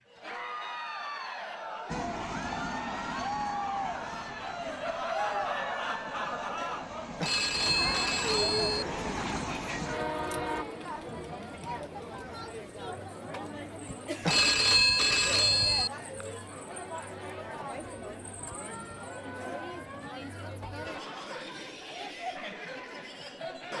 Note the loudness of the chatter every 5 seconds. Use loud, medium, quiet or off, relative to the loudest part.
loud, loud, medium, medium, medium.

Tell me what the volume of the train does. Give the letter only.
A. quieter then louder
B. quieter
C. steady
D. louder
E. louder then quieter
A.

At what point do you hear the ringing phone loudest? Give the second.
15 s.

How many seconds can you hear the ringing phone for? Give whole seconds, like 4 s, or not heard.
3 s.